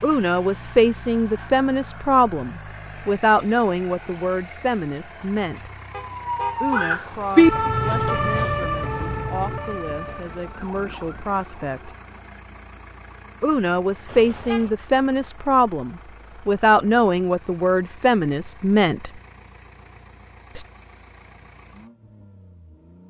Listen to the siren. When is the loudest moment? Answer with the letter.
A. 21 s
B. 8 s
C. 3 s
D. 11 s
B.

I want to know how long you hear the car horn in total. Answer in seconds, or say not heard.
2 s.